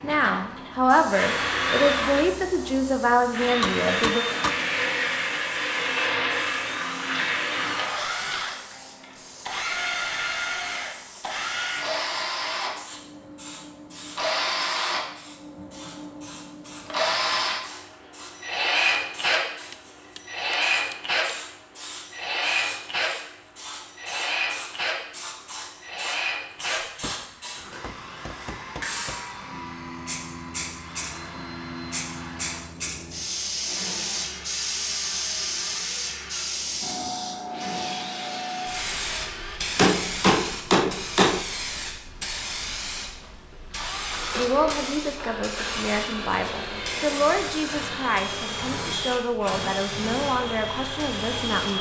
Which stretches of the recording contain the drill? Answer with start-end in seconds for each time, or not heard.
0.0-39.6, 43.2-51.7.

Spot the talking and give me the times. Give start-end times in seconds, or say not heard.
0.0-4.2, 44.4-51.7.